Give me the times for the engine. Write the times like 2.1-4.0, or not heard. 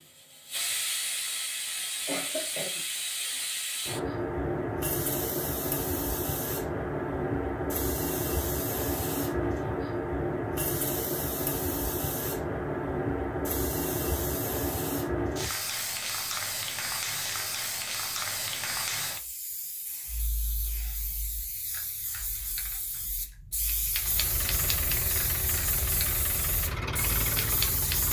23.9-28.0.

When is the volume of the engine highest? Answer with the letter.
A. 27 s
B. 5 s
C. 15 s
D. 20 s
A.